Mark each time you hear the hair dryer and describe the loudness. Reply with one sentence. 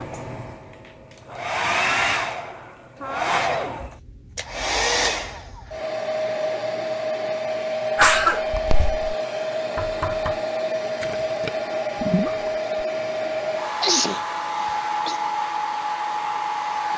The hair dryer can be heard from 0.0 to 16.9 s, at a steady volume.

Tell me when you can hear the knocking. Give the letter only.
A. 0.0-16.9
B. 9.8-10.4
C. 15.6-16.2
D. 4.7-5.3
B.